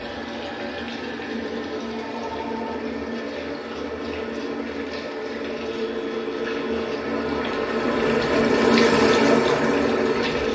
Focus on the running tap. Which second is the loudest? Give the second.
9 s.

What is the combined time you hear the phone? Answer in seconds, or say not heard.
2 s.